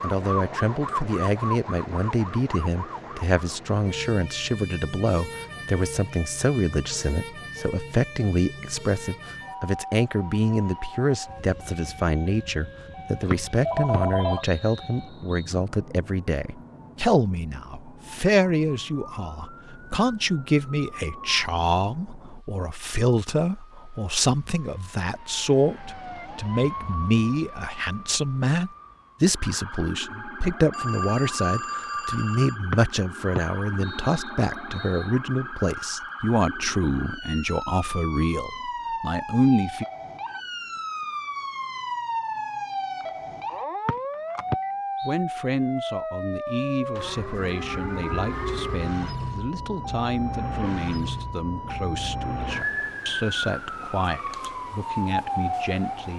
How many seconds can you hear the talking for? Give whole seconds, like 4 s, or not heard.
51 s.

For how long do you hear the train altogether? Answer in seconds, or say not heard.
not heard.